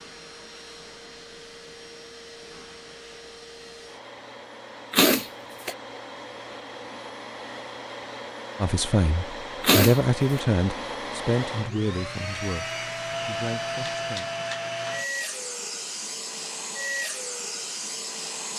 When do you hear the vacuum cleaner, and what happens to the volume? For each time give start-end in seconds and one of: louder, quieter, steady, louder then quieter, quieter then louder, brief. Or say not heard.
0.0-18.5 louder.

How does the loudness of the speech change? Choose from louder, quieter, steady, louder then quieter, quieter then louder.
quieter.